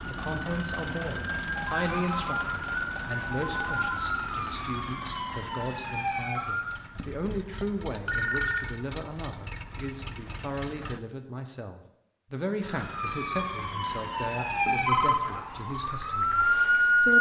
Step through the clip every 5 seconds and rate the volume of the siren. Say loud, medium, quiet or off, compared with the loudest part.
medium, medium, medium, loud.